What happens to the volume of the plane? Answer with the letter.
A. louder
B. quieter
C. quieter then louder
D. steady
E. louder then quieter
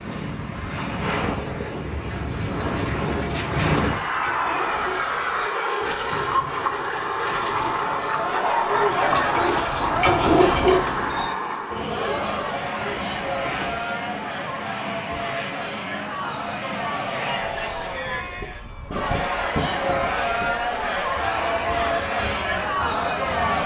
B.